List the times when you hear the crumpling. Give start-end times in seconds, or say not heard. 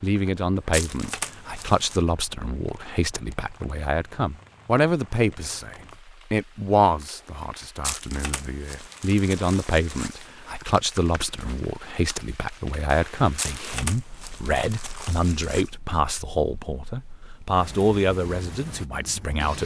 0.7-2.0, 7.8-10.2, 13.3-15.7.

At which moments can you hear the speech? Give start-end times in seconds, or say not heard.
0.0-19.6.